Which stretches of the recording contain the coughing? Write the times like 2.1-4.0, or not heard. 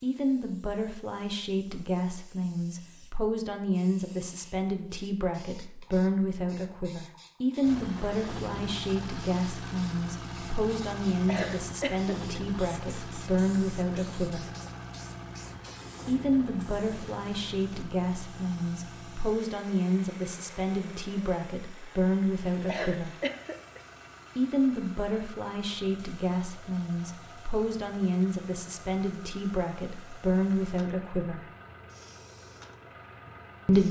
11.2-12.4, 22.6-23.8.